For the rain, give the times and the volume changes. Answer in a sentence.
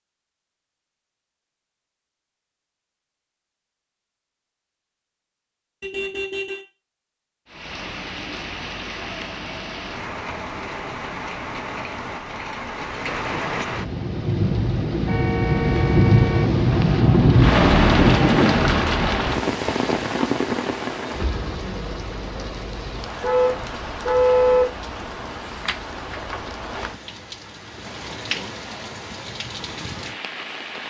The rain can be heard from 7.5 to 30.8 s, getting louder then quieter.